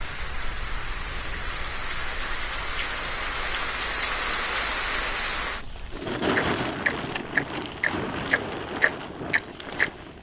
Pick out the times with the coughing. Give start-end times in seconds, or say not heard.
not heard.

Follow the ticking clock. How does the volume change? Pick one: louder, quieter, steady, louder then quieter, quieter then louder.
quieter then louder.